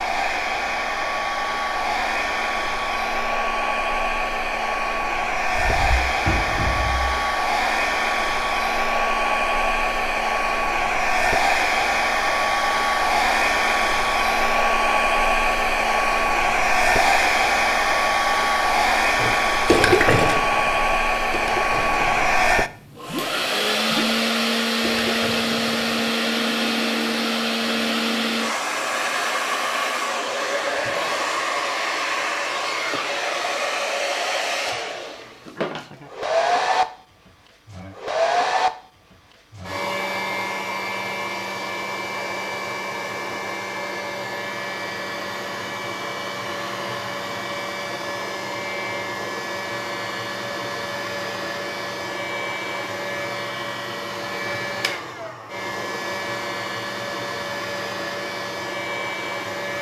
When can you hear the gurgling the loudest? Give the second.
20 s.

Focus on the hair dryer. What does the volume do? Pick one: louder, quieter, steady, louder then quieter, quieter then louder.
quieter.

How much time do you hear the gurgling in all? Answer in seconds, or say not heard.
6 s.